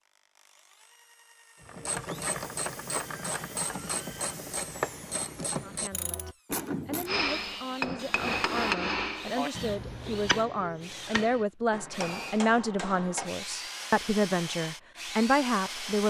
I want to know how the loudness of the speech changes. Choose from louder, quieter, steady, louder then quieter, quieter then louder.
louder.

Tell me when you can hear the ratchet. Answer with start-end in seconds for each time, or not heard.
1.6-7.2.